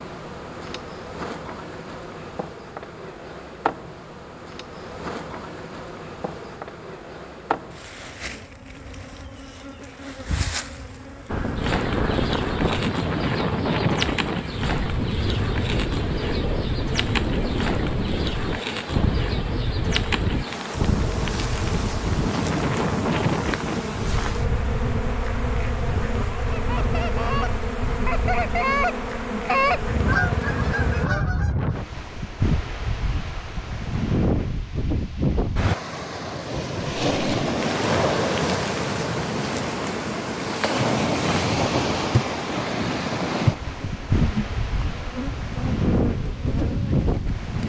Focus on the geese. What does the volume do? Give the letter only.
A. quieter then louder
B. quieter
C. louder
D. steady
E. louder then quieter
E.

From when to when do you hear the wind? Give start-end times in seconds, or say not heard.
11.2-47.6.